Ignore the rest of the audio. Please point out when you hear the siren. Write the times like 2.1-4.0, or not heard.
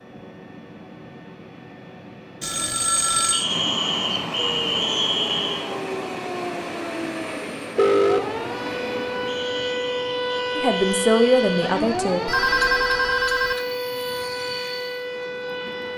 4.3-15.9.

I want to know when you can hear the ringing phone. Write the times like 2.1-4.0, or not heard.
2.4-3.5, 7.8-8.2, 12.2-13.6.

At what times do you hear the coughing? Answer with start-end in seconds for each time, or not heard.
not heard.